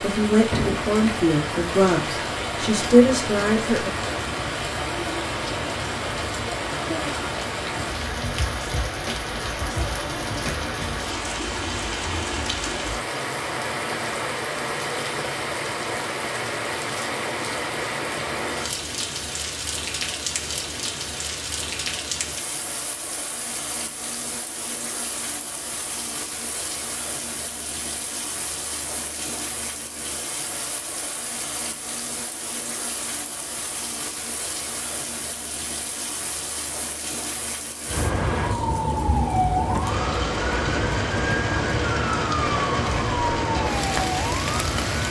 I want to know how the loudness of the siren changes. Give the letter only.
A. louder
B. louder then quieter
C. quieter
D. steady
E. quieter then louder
D.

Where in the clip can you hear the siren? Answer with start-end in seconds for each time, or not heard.
37.9-45.0.